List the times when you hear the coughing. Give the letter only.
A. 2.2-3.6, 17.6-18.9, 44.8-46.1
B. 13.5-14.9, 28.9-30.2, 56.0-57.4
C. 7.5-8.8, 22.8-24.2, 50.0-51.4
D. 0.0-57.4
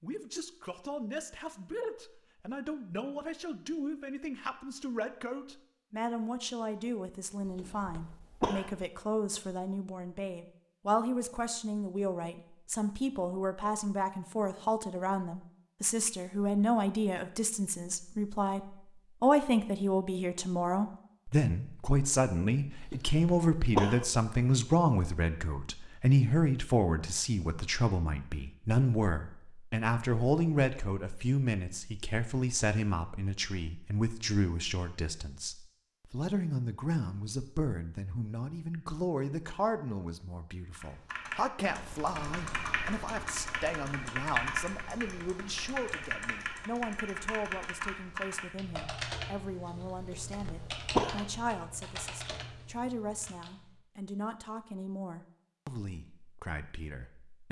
C.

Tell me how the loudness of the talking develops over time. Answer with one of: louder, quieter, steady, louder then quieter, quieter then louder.
louder then quieter.